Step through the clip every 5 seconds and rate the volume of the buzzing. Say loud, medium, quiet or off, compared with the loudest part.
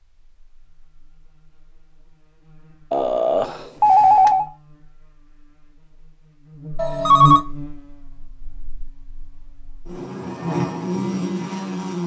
quiet, medium, loud.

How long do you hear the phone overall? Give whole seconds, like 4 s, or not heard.
2 s.